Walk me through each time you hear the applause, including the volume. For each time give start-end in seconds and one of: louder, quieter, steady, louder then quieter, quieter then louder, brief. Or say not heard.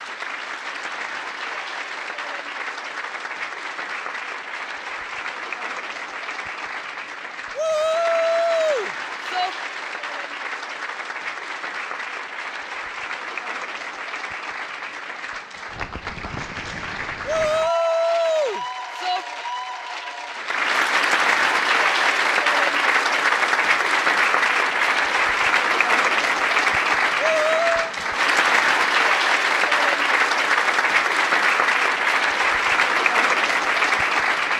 0.0-34.5 louder.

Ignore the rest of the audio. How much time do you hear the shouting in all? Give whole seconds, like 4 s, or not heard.
5 s.